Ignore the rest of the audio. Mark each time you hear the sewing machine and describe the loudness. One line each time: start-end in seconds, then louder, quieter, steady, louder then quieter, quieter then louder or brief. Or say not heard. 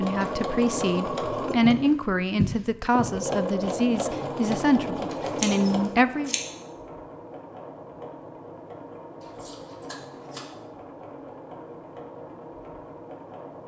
0.0-13.6 quieter.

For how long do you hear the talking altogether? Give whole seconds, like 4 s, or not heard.
6 s.